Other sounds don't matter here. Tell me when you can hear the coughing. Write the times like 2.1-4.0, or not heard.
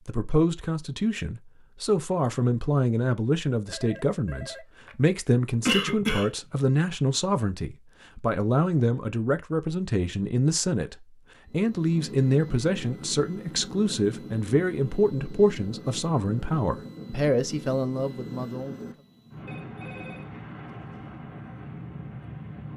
5.7-6.3.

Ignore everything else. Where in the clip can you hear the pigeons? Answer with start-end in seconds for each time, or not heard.
not heard.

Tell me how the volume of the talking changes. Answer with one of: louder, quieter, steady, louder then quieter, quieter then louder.
steady.